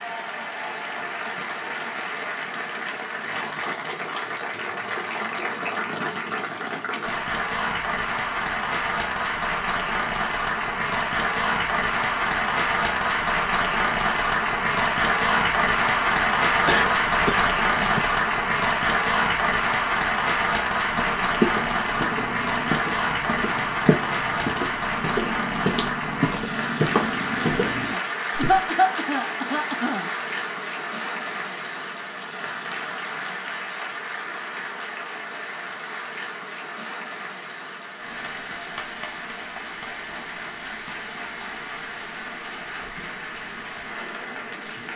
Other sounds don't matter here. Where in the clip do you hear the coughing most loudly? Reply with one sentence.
The volume of the coughing peaks at 29 seconds.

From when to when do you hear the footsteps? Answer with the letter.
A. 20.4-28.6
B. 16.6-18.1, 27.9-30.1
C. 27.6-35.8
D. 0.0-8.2
A.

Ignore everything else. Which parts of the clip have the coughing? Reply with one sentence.
The coughing can be heard from 16.6 to 18.1 s and from 27.9 to 30.1 s.